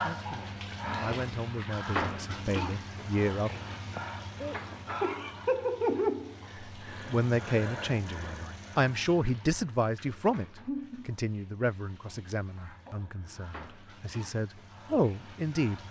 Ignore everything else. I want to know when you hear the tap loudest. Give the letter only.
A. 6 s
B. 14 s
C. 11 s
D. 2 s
A.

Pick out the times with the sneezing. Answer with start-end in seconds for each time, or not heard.
4.0-4.8.